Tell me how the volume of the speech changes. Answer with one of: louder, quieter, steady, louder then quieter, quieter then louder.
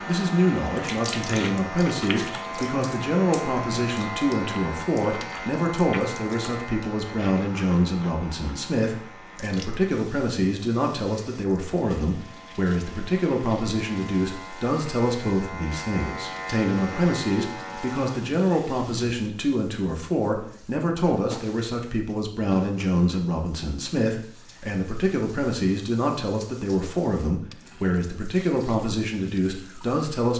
steady.